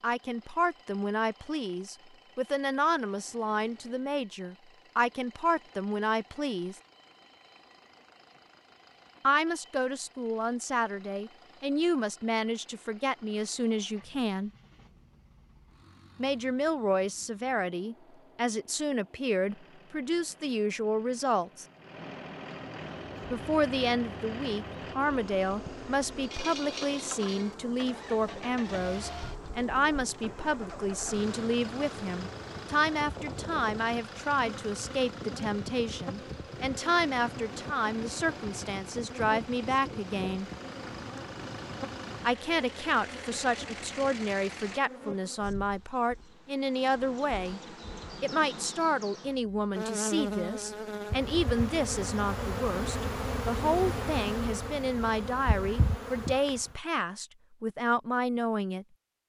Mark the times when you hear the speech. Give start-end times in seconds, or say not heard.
0.0-6.8, 9.2-14.5, 16.1-21.6, 23.3-40.5, 42.2-47.6, 48.2-58.9.